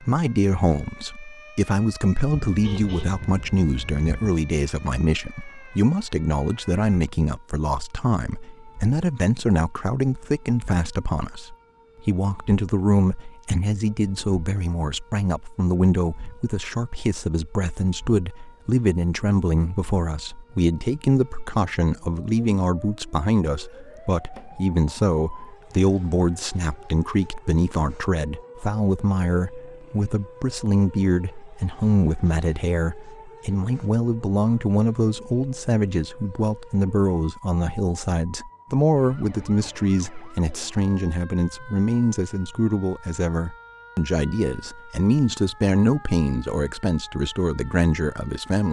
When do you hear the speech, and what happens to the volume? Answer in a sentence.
The speech can be heard from 0.0 to 48.6 s, at a steady volume.